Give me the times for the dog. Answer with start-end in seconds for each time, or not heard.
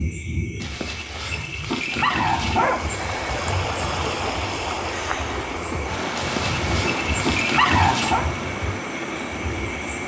0.6-2.8, 6.2-8.2.